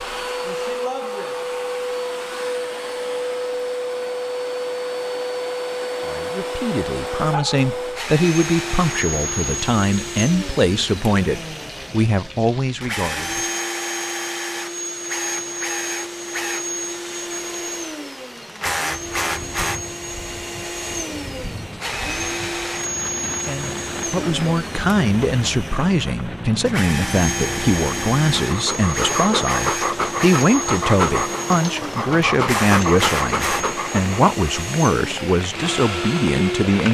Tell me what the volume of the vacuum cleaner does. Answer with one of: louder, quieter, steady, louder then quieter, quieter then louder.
steady.